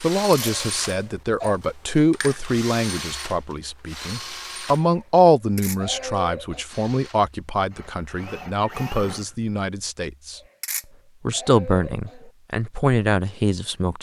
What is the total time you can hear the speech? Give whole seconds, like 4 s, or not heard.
13 s.